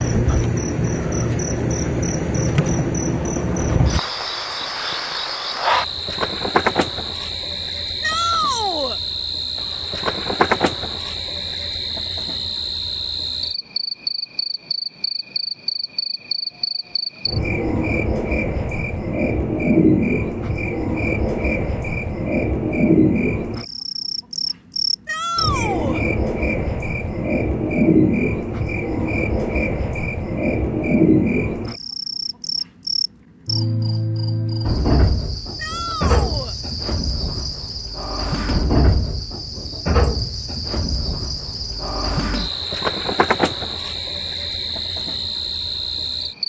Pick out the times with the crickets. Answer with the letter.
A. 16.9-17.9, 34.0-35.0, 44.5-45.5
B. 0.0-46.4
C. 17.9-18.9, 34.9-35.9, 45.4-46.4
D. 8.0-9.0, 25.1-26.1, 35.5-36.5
B.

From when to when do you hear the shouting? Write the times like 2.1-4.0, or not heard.
8.0-9.0, 25.1-26.1, 35.5-36.5.